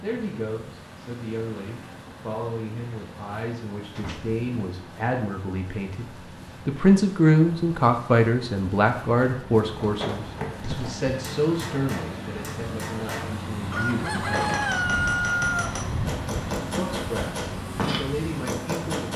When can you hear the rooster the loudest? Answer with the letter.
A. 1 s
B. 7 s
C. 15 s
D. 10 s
C.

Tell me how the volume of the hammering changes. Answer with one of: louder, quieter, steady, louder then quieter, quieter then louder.
louder.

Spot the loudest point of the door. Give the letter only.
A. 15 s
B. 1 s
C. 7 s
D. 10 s
D.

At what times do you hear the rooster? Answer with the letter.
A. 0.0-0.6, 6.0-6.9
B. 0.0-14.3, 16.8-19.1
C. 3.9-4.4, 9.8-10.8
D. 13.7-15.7
D.